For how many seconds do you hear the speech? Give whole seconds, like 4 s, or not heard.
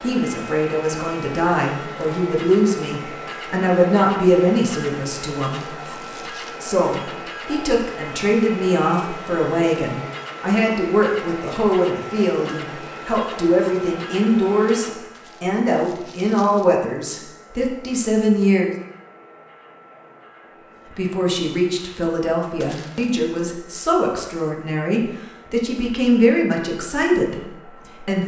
25 s.